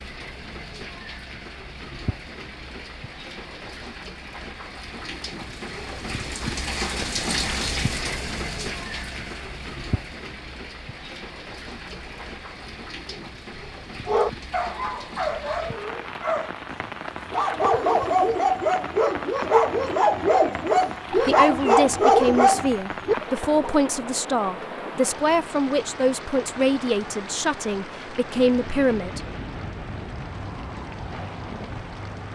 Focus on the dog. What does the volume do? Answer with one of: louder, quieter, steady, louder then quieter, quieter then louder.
louder.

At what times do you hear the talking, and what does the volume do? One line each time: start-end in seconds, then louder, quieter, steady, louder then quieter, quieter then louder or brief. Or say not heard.
21.1-29.2 steady.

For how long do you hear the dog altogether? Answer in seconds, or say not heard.
12 s.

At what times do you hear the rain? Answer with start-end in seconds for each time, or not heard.
0.0-32.3.